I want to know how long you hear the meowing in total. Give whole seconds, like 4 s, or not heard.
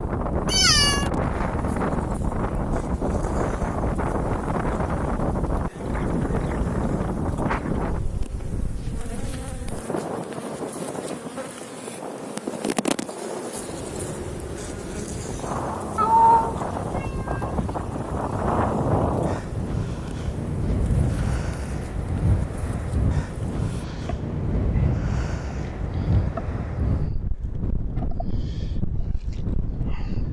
2 s.